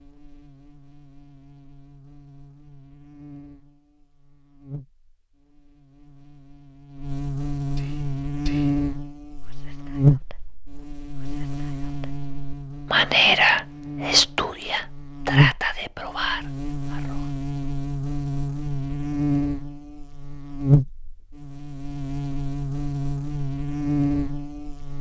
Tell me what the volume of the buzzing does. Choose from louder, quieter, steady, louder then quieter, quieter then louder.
louder.